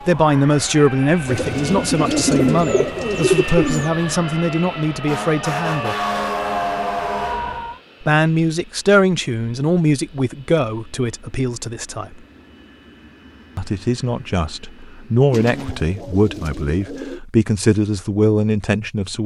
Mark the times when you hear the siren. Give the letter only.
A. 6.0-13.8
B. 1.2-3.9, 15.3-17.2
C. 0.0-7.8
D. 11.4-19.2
C.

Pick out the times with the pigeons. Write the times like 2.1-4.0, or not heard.
1.2-3.9, 15.3-17.2.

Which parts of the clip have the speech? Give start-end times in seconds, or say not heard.
0.1-6.0, 8.0-12.2, 13.6-19.2.